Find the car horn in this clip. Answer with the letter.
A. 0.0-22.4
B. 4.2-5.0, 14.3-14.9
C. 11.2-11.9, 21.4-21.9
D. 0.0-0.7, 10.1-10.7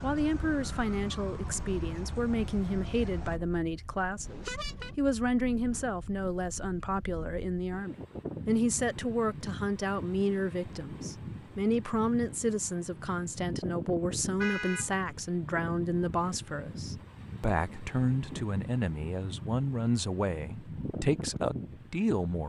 B.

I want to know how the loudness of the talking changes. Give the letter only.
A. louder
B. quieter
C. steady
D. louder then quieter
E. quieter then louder
C.